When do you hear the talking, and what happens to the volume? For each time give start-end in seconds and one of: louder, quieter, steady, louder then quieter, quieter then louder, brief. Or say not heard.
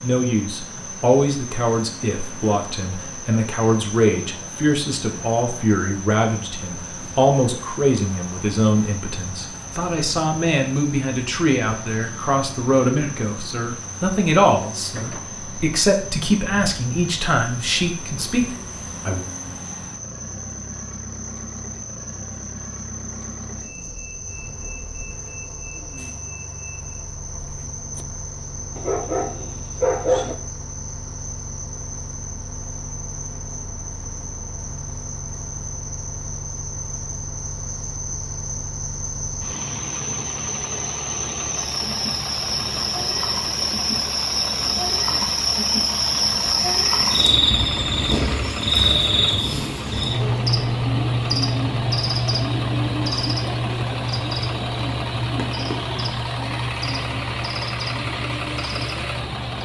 0.0-19.3 steady.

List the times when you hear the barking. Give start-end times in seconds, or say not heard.
28.8-30.4.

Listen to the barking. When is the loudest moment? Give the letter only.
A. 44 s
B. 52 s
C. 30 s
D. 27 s
C.